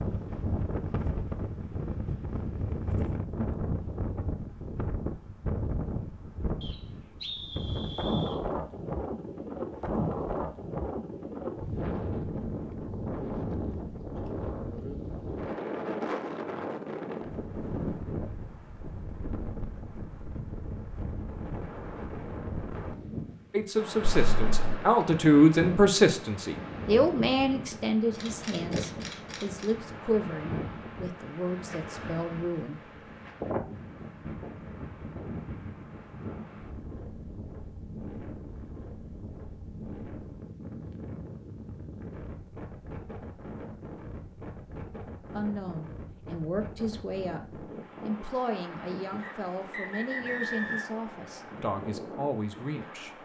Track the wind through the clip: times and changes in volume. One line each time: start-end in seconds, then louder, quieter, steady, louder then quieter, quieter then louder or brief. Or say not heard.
0.0-53.1 quieter.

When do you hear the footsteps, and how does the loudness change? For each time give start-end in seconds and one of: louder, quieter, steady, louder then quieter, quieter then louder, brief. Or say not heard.
not heard.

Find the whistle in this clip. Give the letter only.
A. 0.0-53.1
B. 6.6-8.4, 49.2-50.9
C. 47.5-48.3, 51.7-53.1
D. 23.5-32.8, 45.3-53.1
B.